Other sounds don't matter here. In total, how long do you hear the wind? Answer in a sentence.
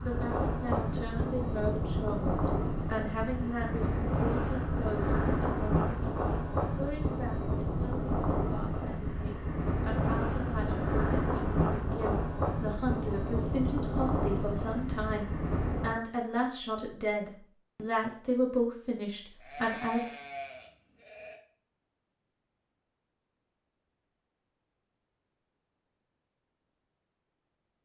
You can hear the wind for 16 seconds altogether.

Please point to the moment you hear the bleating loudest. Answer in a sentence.
The volume of the bleating peaks at 20 seconds.